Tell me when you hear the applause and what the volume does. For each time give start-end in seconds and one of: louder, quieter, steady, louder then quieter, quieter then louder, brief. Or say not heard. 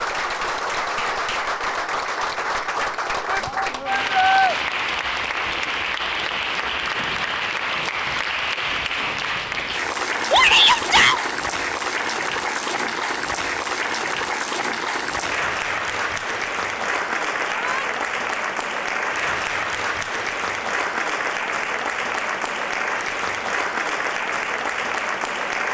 0.0-25.7 steady.